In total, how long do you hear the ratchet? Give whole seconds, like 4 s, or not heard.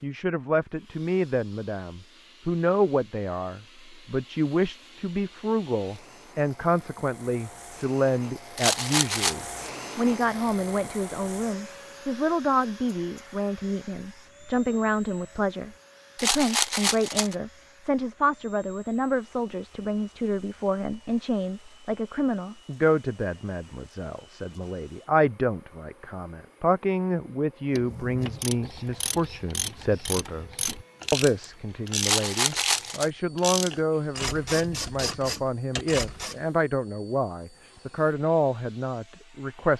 9 s.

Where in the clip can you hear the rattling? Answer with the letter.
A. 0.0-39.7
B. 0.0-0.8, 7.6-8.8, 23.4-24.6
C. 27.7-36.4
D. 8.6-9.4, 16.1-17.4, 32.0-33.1
D.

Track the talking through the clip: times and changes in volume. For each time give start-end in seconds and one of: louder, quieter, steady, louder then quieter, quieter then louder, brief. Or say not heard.
0.0-39.7 steady.